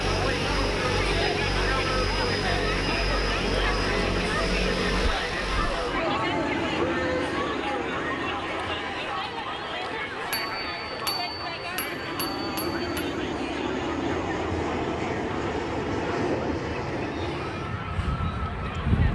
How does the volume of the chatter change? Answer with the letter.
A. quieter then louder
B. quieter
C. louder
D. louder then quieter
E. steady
B.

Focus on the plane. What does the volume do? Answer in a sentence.
The loudness of the plane goes down, then up.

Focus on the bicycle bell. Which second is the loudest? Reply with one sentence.
The loudest moment of the bicycle bell is at 11 seconds.